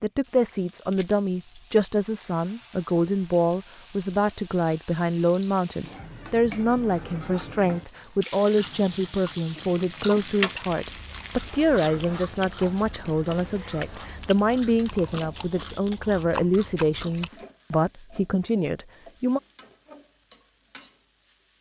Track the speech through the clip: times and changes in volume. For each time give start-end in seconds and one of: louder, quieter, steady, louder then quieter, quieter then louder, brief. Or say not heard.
0.0-19.4 steady.